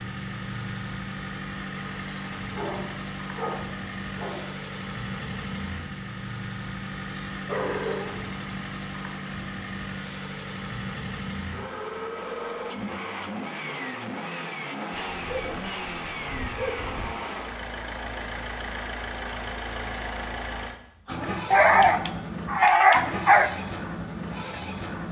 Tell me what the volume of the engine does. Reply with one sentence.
The loudness of the engine stays about the same.